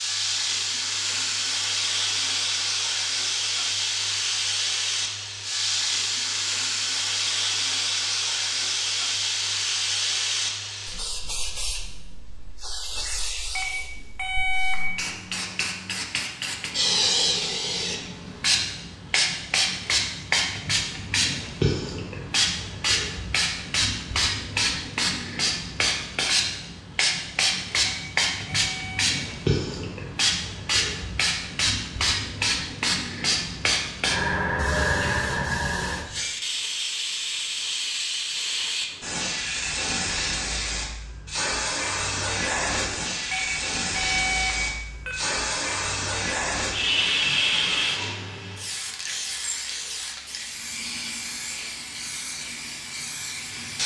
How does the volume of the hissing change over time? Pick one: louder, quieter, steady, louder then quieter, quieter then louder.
steady.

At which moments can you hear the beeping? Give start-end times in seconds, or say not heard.
13.6-14.9, 28.1-29.2, 43.3-45.2.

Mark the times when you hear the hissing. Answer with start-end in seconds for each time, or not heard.
0.0-53.8.